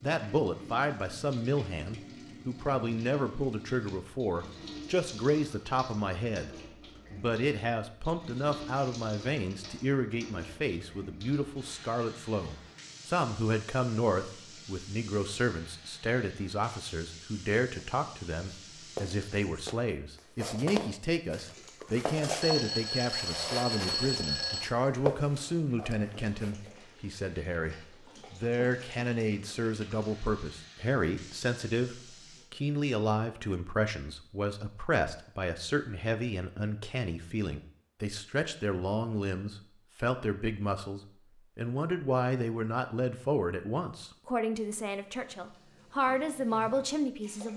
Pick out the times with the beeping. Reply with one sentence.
The beeping can be heard from 22.4 to 24.8 s.